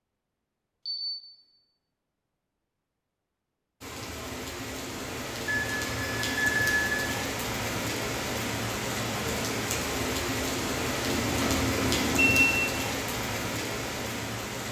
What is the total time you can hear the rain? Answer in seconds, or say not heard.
11 s.